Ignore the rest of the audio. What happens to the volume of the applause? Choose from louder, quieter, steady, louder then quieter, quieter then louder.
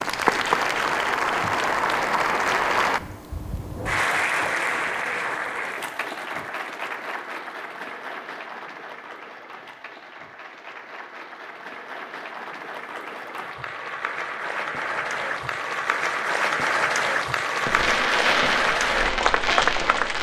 quieter then louder.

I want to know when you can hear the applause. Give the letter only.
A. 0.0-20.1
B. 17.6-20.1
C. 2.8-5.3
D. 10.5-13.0
A.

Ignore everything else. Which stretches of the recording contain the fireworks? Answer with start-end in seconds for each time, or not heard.
17.6-20.1.